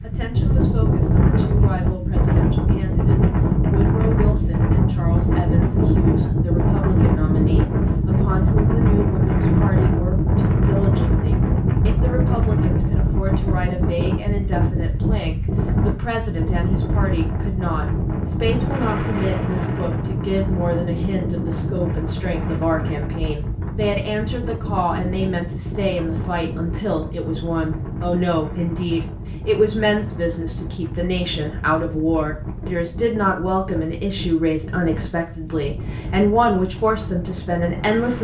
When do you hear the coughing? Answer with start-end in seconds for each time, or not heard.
not heard.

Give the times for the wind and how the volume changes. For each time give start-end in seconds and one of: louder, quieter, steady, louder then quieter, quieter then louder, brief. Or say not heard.
0.0-38.1 quieter.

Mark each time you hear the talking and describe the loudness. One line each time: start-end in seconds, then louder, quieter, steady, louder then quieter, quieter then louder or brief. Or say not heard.
0.0-38.1 louder.